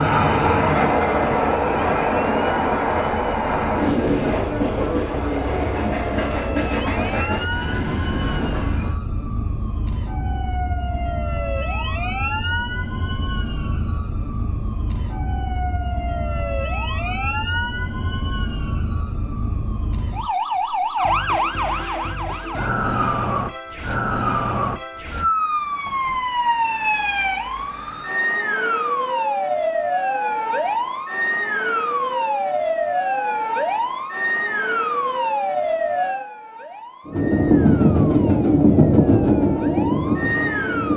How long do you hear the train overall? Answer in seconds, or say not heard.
13 s.